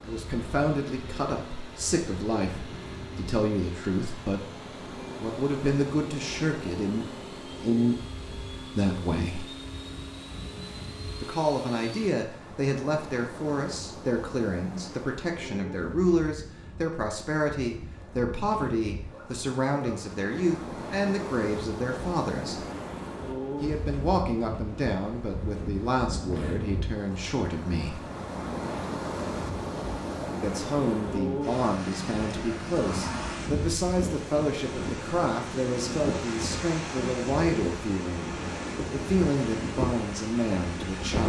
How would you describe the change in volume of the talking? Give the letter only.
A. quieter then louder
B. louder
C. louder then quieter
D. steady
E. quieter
D.